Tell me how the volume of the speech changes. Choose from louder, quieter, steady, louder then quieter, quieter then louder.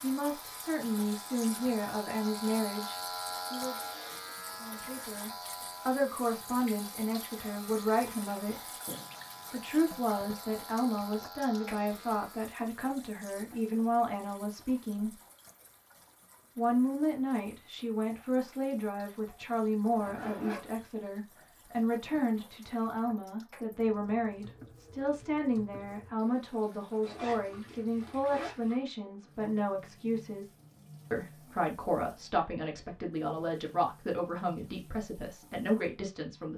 steady.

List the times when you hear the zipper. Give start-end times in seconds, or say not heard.
8.8-9.6, 19.9-20.9, 27.0-28.6.